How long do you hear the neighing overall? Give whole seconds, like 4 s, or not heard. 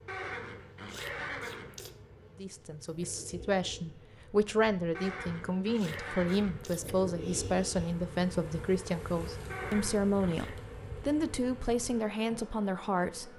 5 s.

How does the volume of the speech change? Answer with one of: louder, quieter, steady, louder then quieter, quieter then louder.
steady.